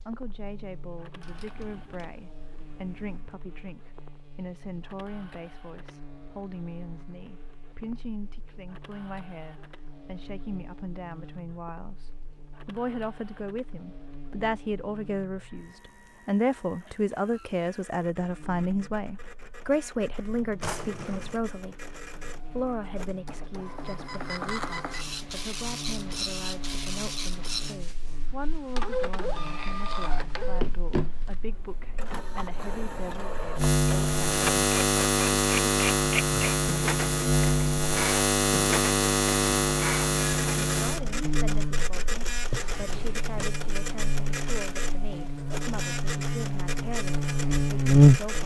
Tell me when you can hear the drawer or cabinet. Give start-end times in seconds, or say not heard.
1.2-3.4, 20.6-21.4, 42.4-43.3.